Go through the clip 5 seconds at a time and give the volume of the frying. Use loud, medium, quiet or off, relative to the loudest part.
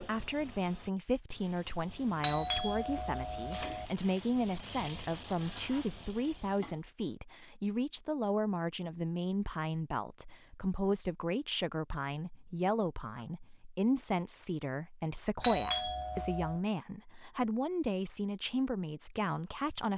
loud, loud, off, off.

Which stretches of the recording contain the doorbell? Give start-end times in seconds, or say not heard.
2.2-3.9, 15.4-16.6.